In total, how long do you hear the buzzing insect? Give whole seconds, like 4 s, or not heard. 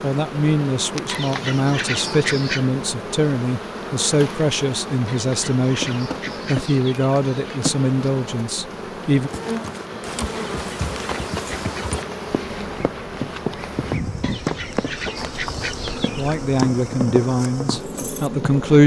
19 s.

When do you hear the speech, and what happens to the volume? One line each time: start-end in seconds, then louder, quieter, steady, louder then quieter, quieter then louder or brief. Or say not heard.
0.0-9.3 steady
16.1-18.8 brief.